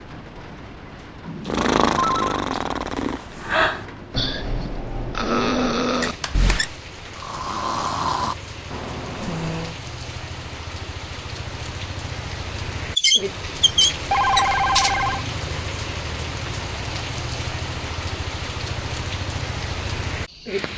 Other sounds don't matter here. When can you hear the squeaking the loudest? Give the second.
13 s.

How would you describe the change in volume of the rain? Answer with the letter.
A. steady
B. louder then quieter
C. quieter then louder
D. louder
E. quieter
D.